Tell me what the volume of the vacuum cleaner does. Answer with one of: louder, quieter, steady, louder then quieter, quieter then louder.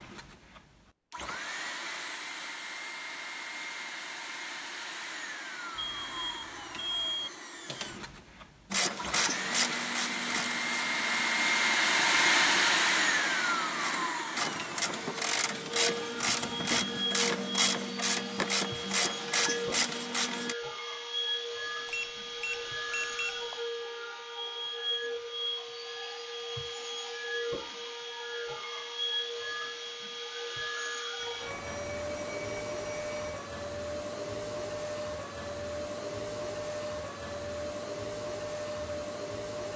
louder then quieter.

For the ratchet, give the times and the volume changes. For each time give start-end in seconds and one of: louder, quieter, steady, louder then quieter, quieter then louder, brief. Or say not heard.
8.7-20.6 quieter then louder.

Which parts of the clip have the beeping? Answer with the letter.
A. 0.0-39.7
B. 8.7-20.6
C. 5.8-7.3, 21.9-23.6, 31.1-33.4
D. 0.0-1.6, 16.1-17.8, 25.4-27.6
C.